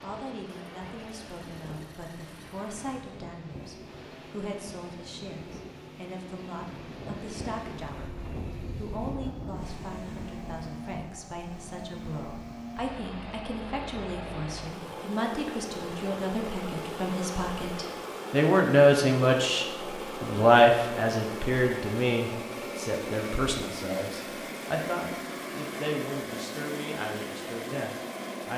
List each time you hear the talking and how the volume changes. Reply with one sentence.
The talking can be heard from 0.0 to 28.5 s, getting louder then quieter.